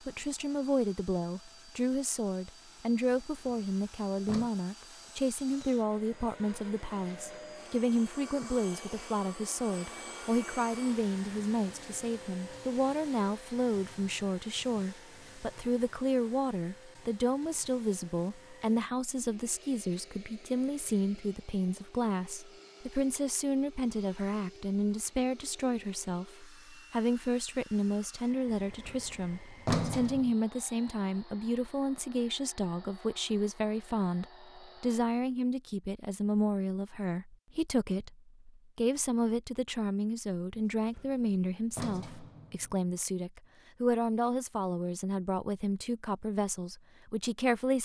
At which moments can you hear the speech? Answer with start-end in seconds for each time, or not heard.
0.1-47.8.